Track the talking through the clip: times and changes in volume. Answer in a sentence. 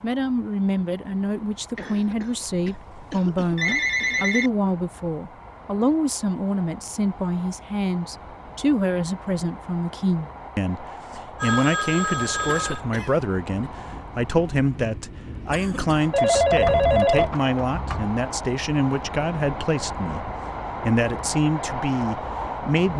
The talking can be heard from 0.0 to 22.9 s, at a steady volume.